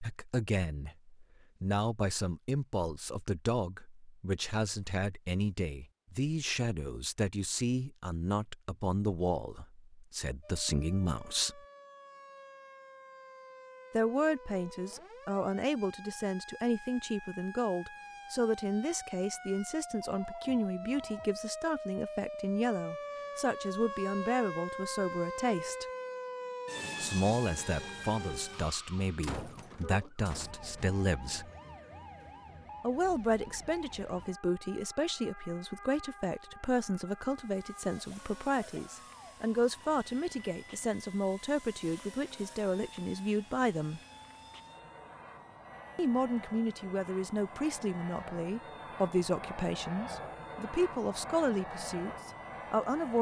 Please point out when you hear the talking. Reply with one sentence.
The talking can be heard from 0.0 to 11.6 s, from 13.9 to 25.9 s, from 27.0 to 31.5 s, from 32.8 to 44.0 s and from 46.0 to 53.1 s.